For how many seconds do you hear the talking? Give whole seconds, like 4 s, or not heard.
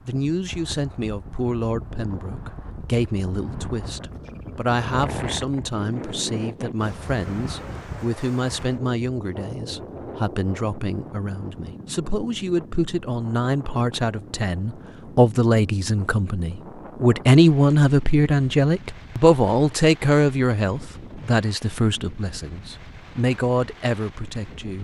25 s.